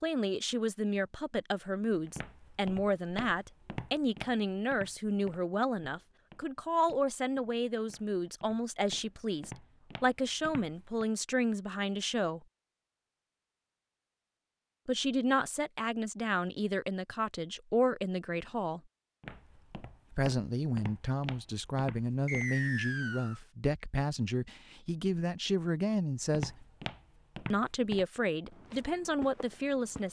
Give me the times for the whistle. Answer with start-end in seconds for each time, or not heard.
22.2-23.4.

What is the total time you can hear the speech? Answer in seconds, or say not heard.
25 s.